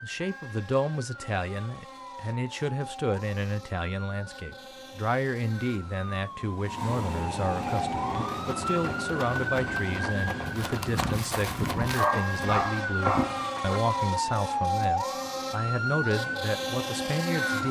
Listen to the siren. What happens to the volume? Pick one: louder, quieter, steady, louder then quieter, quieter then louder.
louder.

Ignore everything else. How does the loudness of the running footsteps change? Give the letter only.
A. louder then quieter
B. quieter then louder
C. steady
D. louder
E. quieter
D.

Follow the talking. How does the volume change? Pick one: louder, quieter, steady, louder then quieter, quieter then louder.
steady.